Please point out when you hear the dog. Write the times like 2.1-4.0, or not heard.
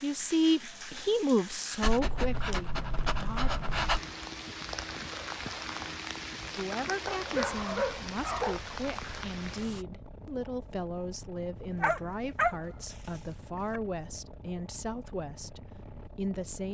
1.8-4.0, 7.0-8.6, 11.8-13.8.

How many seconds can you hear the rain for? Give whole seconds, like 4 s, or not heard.
10 s.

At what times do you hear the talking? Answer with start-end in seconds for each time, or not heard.
0.0-3.5, 6.5-16.6.